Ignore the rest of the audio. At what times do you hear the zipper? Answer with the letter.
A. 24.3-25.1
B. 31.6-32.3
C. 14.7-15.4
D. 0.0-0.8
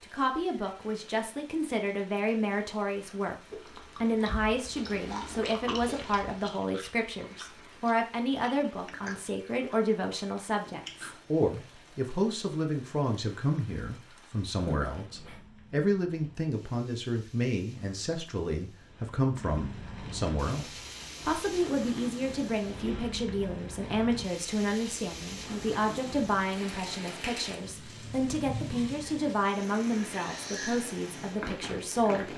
C.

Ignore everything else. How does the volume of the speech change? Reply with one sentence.
The volume of the speech stays about the same.